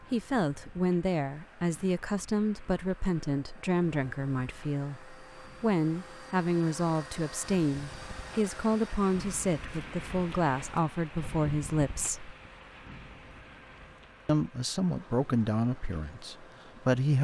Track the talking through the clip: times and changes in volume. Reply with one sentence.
You can hear the talking from 0.1 to 12.3 s, at a steady volume; and briefly from 14.2 to 17.1 s.